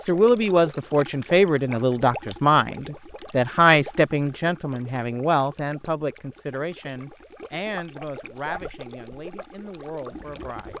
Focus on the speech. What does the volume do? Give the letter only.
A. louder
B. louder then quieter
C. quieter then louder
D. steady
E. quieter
E.